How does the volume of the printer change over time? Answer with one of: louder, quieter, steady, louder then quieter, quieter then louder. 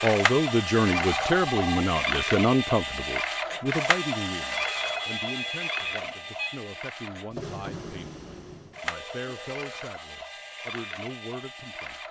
quieter.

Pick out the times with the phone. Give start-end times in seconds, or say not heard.
0.9-1.9, 4.5-6.6, 8.3-9.9.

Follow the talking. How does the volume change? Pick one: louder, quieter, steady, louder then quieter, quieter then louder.
quieter.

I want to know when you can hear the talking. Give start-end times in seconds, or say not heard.
0.0-12.0.